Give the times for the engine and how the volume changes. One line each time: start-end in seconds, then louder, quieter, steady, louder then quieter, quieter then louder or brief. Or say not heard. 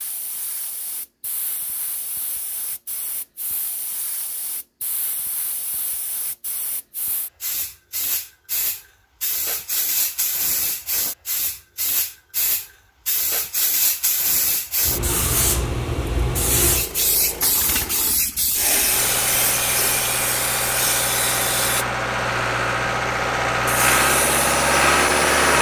16.6-25.5 louder.